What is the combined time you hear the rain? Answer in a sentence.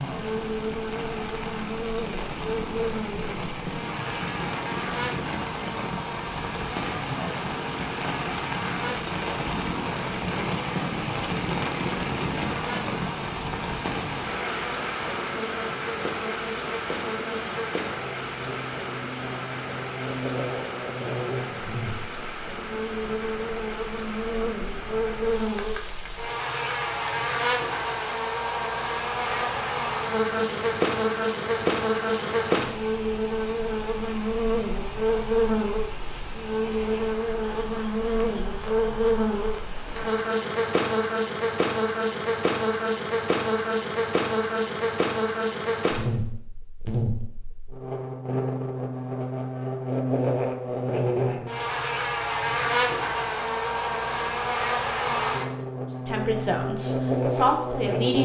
You can hear the rain for 40 seconds altogether.